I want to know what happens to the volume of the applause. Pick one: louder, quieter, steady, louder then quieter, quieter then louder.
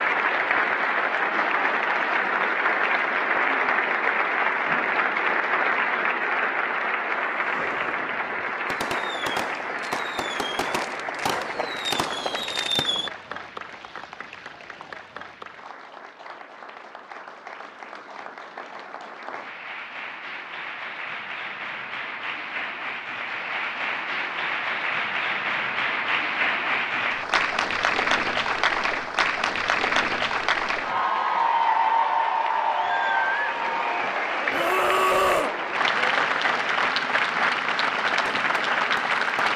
quieter then louder.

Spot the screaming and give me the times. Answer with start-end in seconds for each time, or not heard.
7.2-8.0, 34.5-35.5.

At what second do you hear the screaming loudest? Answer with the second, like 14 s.
35 s.